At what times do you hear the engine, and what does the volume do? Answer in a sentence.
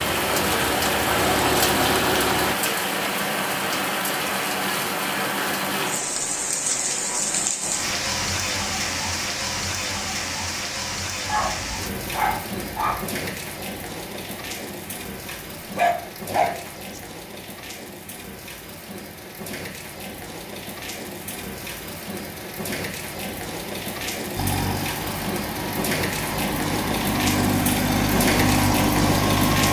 The engine can be heard briefly from 0.0 to 2.5 s; and from 24.4 to 29.6 s, getting louder.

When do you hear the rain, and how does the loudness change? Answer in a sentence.
You can hear the rain from 0.0 to 29.6 s, getting quieter then louder.